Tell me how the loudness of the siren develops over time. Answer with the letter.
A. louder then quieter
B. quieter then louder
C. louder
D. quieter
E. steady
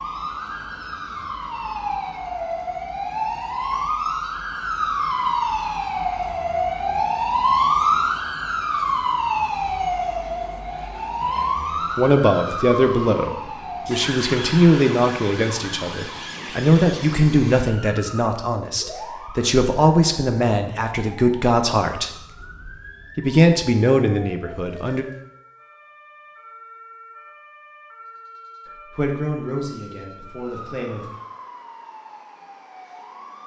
D.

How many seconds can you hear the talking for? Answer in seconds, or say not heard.
15 s.